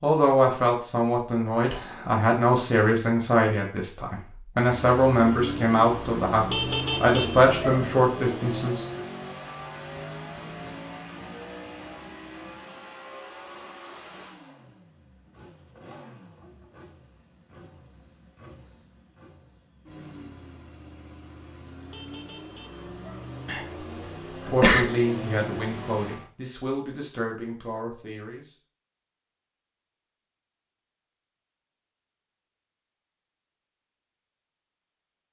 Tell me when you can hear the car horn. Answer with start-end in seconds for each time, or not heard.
6.5-7.8, 21.9-23.2.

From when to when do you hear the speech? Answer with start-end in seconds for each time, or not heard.
0.0-9.0, 24.5-28.6.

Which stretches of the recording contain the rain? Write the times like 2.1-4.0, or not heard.
not heard.